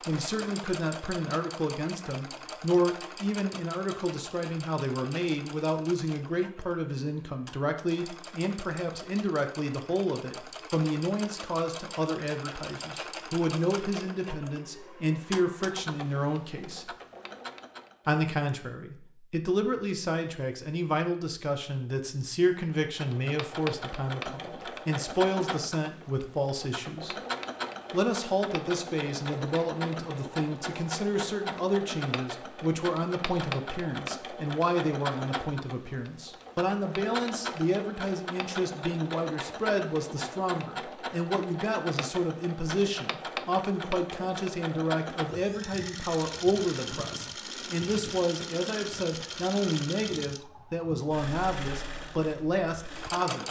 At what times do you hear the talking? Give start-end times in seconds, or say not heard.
0.1-16.9, 18.1-27.1, 27.9-53.4.